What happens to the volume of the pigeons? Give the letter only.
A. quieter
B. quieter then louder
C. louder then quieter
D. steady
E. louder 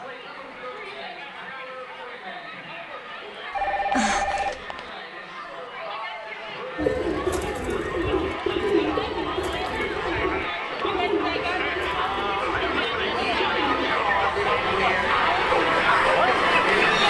A.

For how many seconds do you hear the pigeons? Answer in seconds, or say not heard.
10 s.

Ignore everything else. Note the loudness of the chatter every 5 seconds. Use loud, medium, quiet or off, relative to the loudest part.
quiet, quiet, medium, loud.